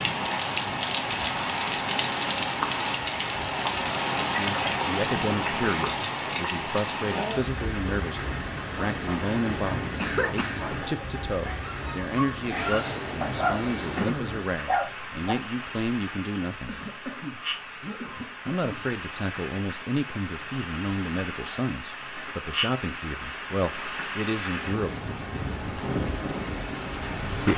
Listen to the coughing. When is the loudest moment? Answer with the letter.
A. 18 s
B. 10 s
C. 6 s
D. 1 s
B.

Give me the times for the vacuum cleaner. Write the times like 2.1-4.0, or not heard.
12.5-14.2.